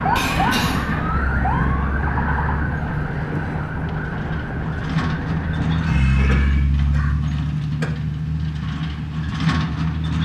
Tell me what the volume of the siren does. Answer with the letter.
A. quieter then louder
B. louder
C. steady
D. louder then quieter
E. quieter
E.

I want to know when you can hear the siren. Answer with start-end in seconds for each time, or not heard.
0.0-6.7.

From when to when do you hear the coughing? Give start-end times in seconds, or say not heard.
0.1-1.2, 5.8-7.8.